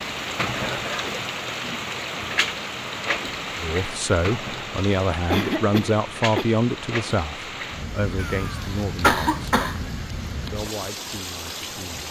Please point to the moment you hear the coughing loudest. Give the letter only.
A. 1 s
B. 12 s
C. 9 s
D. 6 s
C.